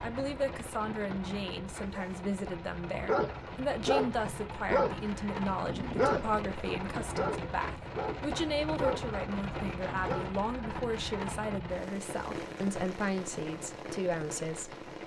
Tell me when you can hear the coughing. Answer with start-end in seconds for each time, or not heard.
not heard.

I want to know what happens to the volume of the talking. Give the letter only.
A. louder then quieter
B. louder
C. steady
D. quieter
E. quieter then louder
C.